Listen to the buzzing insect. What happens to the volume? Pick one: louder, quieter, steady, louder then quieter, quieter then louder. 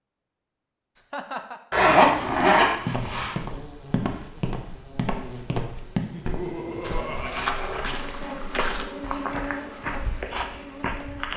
louder.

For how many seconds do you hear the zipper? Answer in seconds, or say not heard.
3 s.